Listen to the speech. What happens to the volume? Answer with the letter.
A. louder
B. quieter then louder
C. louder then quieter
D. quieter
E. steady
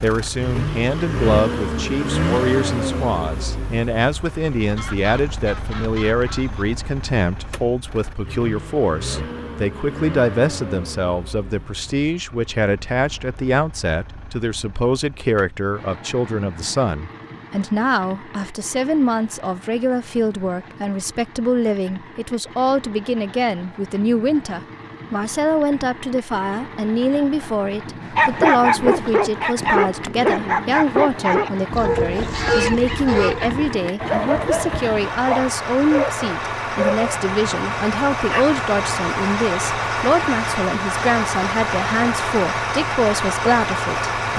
E.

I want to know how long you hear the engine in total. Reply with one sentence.
The engine can be heard for 44 seconds in total.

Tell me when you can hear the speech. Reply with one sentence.
The speech can be heard from 0.0 to 44.3 s.